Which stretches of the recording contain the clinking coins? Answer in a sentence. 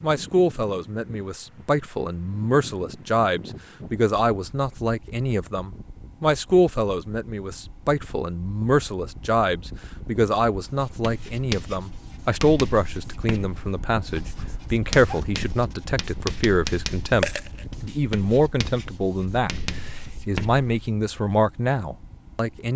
You can hear the clinking coins from 17.2 to 17.6 s.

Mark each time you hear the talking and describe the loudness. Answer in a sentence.
You can hear the talking from 0.0 to 22.7 s, at a steady volume.